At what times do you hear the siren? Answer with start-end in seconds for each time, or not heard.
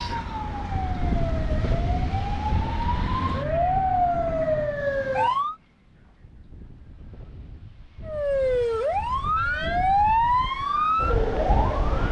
0.0-5.5, 8.1-12.0.